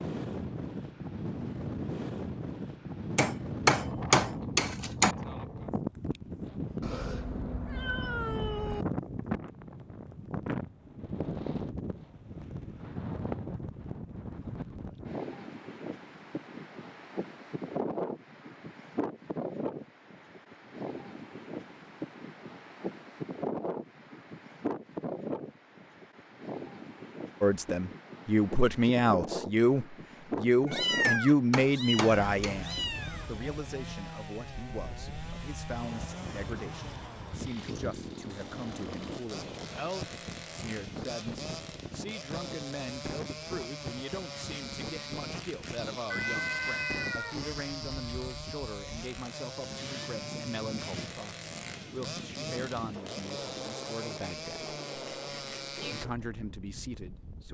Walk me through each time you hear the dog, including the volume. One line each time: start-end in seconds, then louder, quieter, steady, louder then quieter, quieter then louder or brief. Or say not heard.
not heard.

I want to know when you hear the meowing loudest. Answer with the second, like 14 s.
31 s.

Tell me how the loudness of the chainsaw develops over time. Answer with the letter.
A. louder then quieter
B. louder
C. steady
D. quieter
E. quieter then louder
C.